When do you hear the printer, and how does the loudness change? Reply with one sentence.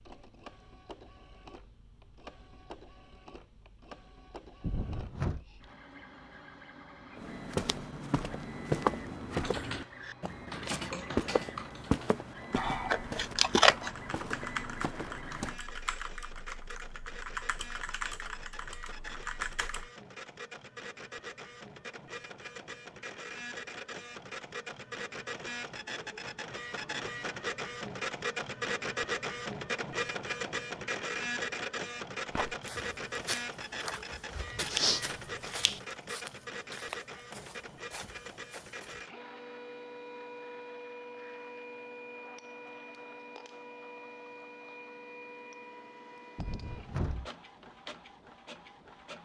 The printer can be heard from 0.0 to 49.2 s, getting louder then quieter.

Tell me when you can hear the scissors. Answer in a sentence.
The scissors can be heard from 12.6 to 13.9 s and from 34.6 to 35.8 s.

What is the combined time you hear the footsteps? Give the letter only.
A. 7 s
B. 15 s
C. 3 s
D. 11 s
B.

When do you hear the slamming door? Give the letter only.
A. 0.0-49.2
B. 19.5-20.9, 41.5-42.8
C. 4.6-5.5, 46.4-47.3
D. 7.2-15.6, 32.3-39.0
C.